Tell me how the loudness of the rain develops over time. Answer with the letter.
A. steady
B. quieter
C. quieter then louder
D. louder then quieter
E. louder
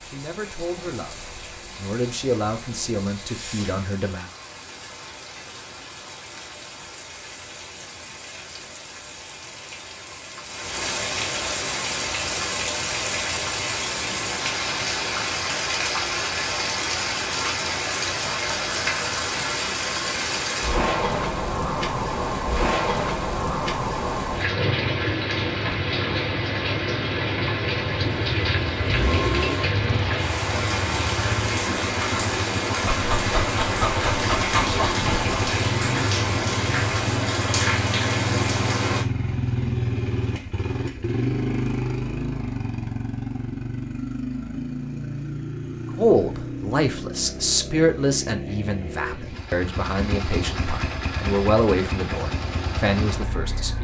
E.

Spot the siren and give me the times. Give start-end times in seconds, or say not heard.
not heard.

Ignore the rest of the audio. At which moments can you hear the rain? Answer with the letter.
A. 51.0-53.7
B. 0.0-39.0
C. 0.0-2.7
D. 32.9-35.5
B.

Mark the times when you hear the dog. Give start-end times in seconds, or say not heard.
32.9-35.5.